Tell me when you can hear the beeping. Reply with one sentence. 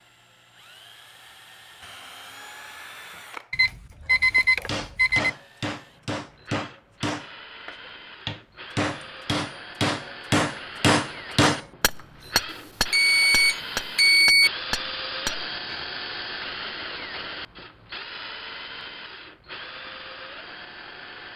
The beeping can be heard from 3.5 to 5.3 s and from 12.5 to 14.5 s.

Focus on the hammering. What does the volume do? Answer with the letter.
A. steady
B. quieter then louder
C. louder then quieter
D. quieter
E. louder
C.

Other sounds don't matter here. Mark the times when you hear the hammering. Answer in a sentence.
The hammering can be heard from 4.3 to 15.8 s.